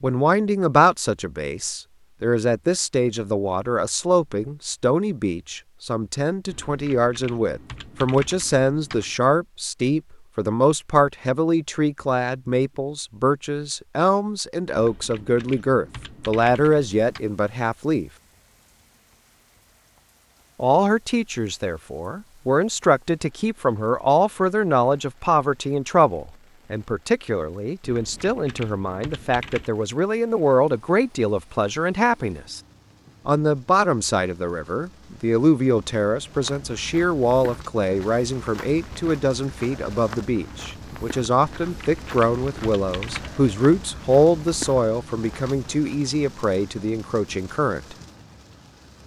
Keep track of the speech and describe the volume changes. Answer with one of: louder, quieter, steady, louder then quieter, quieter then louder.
steady.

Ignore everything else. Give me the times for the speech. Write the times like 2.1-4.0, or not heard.
0.0-18.1, 20.6-32.6, 33.2-48.0.